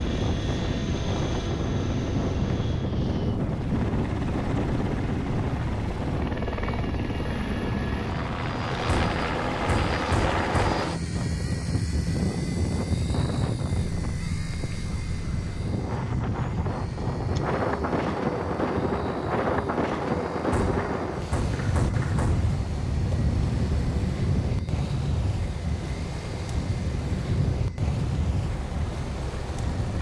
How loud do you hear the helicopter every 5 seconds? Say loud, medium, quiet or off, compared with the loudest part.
medium, loud, loud, medium, medium, medium.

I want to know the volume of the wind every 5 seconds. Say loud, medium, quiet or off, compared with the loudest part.
loud, loud, medium, loud, loud, loud.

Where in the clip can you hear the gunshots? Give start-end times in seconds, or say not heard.
8.8-10.8, 20.5-22.4.